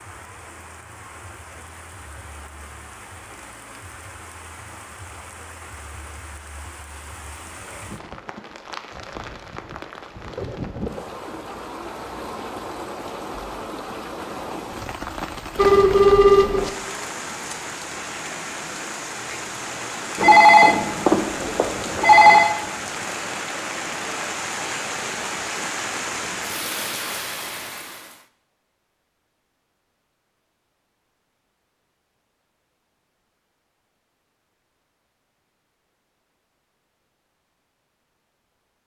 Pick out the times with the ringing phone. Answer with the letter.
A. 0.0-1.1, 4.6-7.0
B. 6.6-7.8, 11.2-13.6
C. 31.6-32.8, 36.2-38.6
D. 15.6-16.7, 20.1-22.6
D.